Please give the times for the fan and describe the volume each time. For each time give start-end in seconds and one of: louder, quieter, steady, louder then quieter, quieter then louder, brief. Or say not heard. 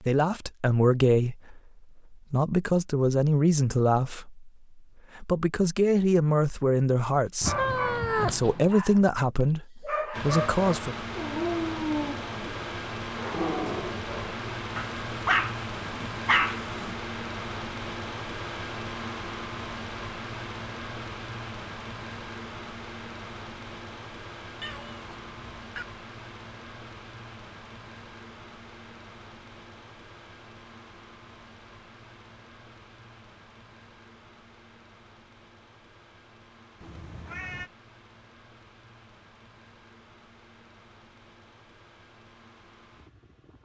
10.1-43.5 quieter.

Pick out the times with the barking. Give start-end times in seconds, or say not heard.
7.5-16.9.